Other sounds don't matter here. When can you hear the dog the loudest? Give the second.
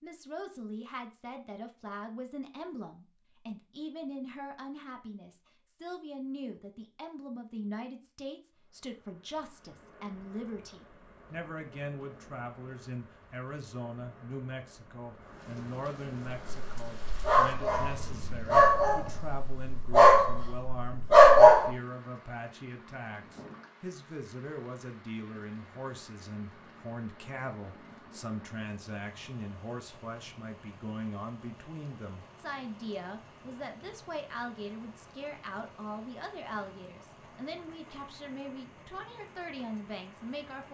21 s.